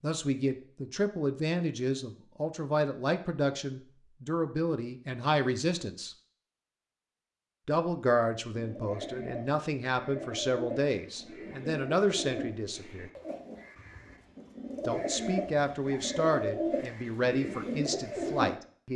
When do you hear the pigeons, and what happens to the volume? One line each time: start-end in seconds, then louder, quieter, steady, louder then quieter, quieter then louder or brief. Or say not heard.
8.6-18.6 quieter then louder.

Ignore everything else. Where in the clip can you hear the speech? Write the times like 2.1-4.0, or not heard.
0.0-6.2, 7.7-13.1, 14.8-18.9.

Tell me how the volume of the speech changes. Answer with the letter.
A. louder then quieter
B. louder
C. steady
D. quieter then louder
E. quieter
C.